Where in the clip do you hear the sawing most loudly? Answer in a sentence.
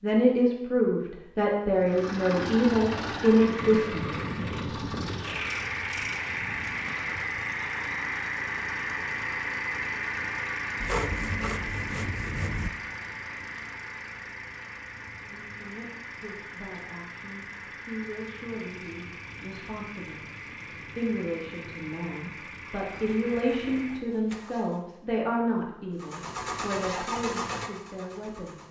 The loudest moment of the sawing is at 11 seconds.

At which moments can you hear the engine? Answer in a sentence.
You can hear the engine from 1.8 to 24.9 s and from 25.9 to 28.6 s.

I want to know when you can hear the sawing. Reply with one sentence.
You can hear the sawing from 10.8 to 12.7 s and from 22.9 to 24.5 s.